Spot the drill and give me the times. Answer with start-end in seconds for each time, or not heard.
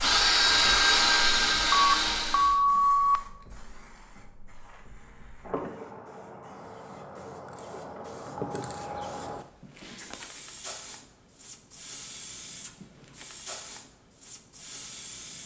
0.0-2.6.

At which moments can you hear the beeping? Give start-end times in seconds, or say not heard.
1.7-3.2.